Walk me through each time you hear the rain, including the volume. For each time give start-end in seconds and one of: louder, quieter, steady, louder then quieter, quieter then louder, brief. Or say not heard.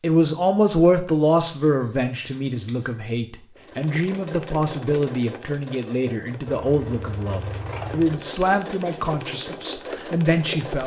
not heard.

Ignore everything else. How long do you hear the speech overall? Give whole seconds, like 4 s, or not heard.
11 s.